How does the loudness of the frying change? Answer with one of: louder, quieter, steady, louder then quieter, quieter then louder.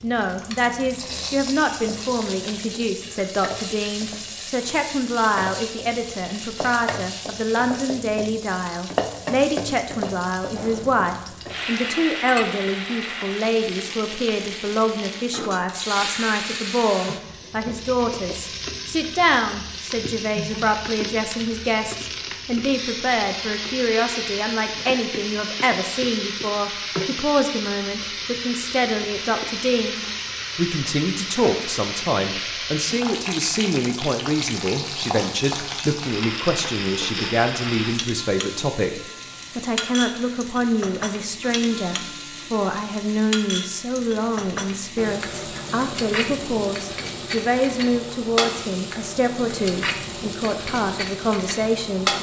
steady.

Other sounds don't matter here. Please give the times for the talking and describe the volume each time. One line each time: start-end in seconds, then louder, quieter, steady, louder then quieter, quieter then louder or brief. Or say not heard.
0.0-52.1 steady.